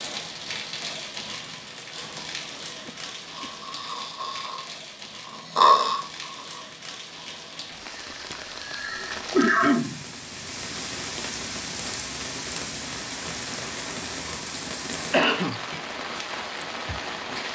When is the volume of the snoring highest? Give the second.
6 s.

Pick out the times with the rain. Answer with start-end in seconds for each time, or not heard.
0.0-17.5.